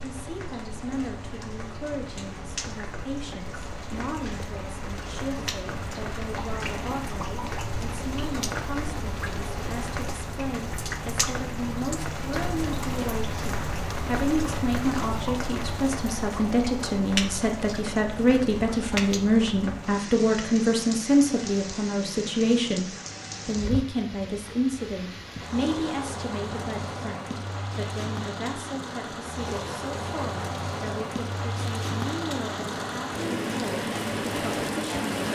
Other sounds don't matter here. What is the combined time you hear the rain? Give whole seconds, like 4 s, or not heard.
35 s.